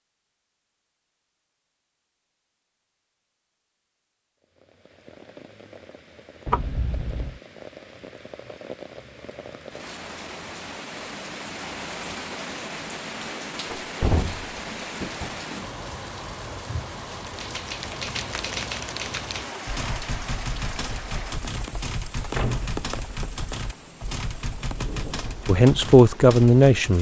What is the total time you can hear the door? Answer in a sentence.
You can hear the door for 3 seconds altogether.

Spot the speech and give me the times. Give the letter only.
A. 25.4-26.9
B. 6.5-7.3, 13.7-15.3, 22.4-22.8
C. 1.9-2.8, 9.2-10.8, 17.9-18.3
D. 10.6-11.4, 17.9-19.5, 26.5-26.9
A.